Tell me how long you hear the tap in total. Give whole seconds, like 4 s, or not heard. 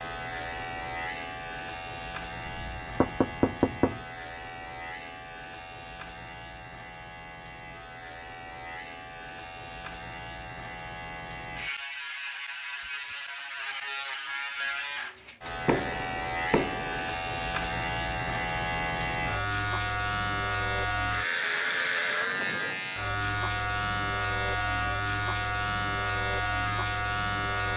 not heard.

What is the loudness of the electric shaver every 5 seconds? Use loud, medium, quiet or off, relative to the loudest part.
medium, quiet, medium, loud, loud, loud.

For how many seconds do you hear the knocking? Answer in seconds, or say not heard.
3 s.